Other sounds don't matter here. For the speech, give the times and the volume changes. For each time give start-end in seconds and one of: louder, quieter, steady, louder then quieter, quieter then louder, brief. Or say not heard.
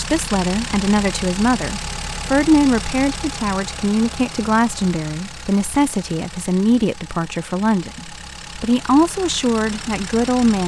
0.0-10.6 steady.